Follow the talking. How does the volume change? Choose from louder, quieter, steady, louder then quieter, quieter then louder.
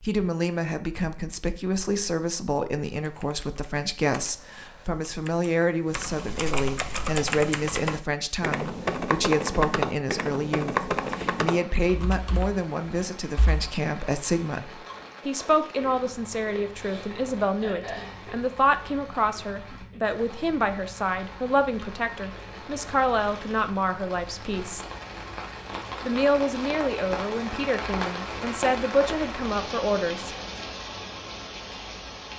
steady.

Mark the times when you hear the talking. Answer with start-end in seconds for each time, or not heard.
0.0-24.9, 26.0-30.4.